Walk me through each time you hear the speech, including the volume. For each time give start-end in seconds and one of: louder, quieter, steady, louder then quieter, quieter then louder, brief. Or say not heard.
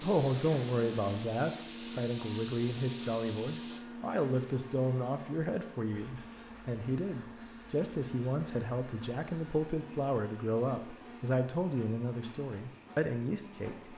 0.0-13.9 steady.